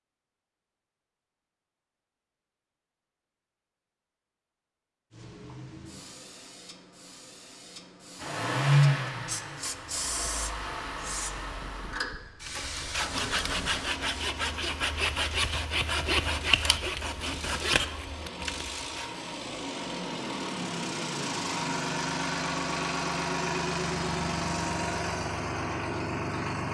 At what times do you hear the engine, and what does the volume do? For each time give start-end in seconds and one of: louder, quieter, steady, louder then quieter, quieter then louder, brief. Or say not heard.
8.2-26.6 quieter then louder.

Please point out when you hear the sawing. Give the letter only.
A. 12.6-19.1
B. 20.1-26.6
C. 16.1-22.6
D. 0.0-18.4
A.